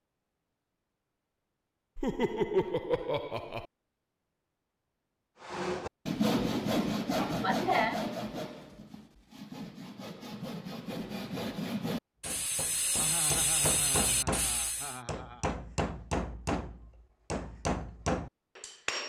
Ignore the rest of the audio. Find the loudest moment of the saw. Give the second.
6 s.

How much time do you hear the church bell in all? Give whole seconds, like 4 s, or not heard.
not heard.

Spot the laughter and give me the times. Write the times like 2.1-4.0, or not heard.
1.9-3.6, 7.2-8.0, 12.9-15.4.